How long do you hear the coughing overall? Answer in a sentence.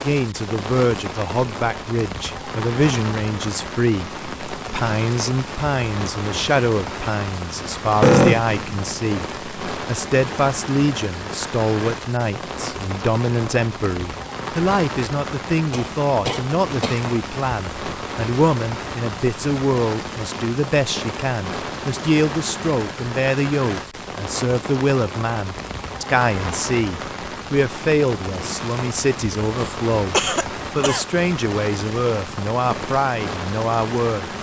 The coughing can be heard for 4 seconds in total.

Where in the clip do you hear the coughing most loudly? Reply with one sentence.
The volume of the coughing peaks at 8 seconds.